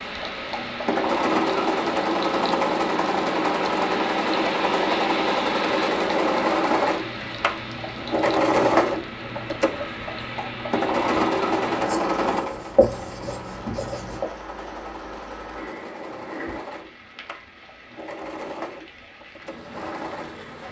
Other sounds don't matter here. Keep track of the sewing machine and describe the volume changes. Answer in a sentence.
The loudness of the sewing machine goes down.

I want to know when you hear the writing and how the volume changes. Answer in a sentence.
You can hear the writing from 6.9 to 14.2 s, getting louder.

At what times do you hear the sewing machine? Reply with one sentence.
The sewing machine can be heard from 0.0 to 20.4 s.